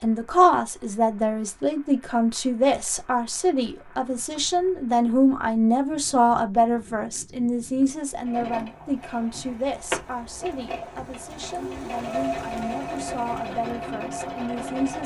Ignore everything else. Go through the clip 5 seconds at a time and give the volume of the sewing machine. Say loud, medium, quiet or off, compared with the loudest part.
off, loud, loud.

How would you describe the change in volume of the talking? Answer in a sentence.
The loudness of the talking goes down.